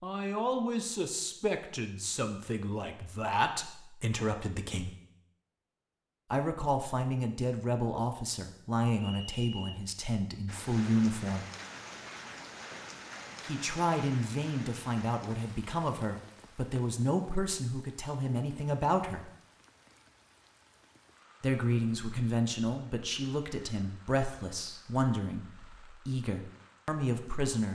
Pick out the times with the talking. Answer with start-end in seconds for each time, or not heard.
0.0-5.0, 6.3-11.4, 13.4-19.3, 21.4-27.7.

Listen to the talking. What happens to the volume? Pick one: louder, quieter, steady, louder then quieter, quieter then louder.
steady.